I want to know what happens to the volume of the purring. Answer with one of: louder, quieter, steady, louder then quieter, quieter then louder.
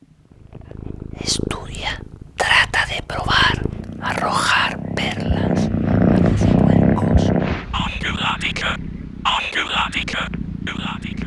louder then quieter.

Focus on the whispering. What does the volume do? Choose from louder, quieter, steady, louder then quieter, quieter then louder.
quieter then louder.